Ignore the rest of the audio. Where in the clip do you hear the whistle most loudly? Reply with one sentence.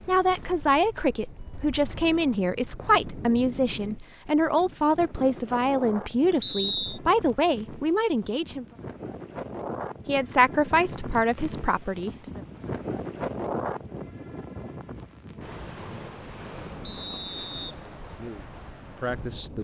The loudest moment of the whistle is at 7 seconds.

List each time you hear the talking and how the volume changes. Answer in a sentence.
The talking can be heard from 0.1 to 8.7 s, at a steady volume; briefly from 10.1 to 12.4 s; and briefly from 17.6 to 19.5 s.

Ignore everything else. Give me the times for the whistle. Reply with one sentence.
The whistle can be heard from 6.4 to 7.0 s and from 16.9 to 17.8 s.